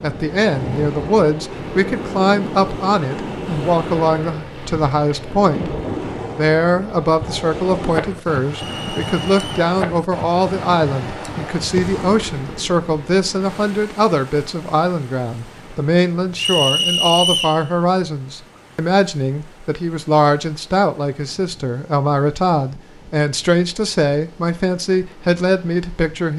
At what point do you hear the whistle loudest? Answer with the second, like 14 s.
17 s.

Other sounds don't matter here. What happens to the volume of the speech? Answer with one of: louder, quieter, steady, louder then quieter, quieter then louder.
steady.